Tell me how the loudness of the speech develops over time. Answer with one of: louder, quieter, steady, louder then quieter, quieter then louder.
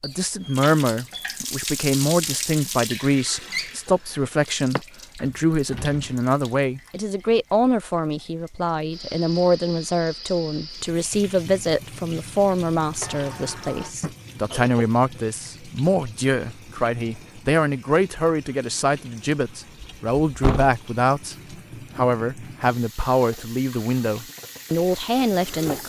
steady.